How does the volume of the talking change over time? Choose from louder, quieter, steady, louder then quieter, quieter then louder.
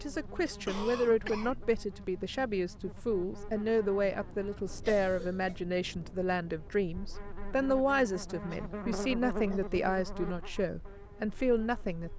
steady.